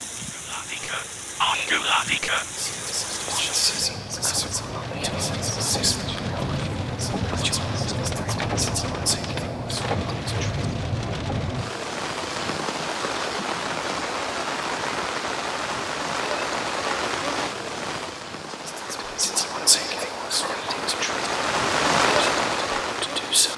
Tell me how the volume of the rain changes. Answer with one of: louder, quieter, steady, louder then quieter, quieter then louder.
louder.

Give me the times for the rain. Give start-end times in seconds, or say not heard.
0.0-23.5.